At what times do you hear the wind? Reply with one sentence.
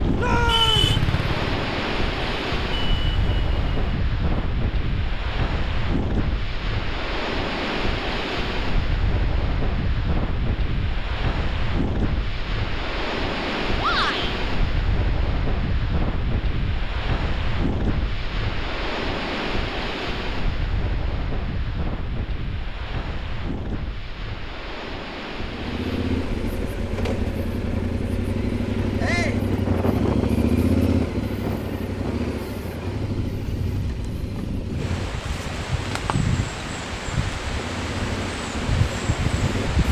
The wind can be heard from 0.0 to 39.8 s.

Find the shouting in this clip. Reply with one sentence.
The shouting can be heard from 0.1 to 0.9 s, from 13.8 to 14.3 s and from 29.0 to 29.4 s.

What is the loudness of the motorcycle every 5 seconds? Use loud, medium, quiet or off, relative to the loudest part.
loud, off, off, off, off, loud, loud, medium.